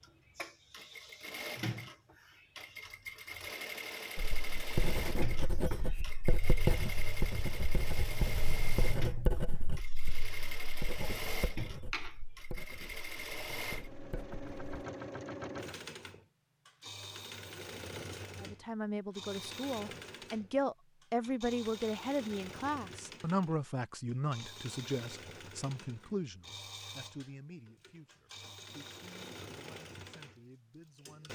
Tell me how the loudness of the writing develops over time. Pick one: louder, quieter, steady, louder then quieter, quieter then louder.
quieter.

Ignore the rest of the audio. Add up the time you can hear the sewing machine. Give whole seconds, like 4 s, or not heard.
31 s.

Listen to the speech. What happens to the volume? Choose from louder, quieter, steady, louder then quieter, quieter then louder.
quieter.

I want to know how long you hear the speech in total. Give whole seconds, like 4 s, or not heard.
13 s.